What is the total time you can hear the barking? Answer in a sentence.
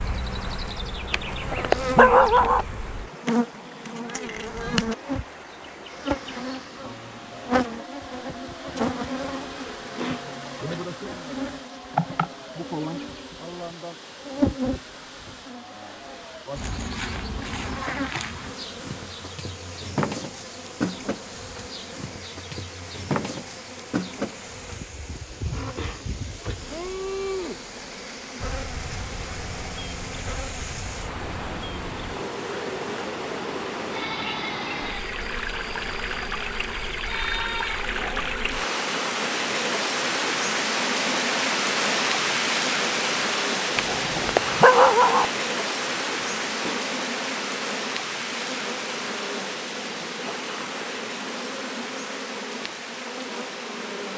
You can hear the barking for 3 seconds altogether.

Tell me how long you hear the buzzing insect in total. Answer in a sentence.
You can hear the buzzing insect for 54 seconds altogether.